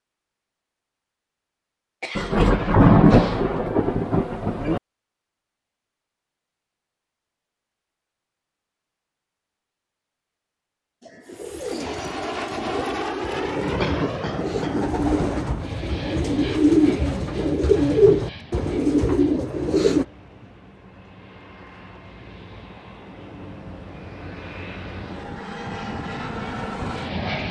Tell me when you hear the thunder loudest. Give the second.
3 s.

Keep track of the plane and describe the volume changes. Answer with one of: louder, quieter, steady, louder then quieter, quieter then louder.
quieter then louder.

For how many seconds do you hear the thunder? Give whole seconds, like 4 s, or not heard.
3 s.